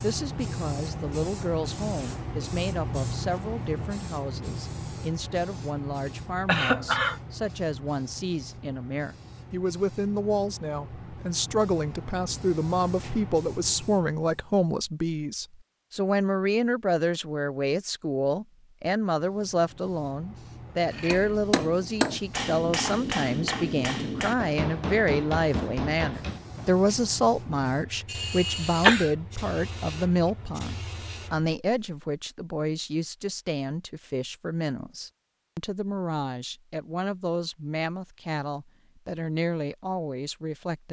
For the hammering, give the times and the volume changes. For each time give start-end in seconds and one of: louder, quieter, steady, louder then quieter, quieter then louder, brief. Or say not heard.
21.1-26.8 quieter.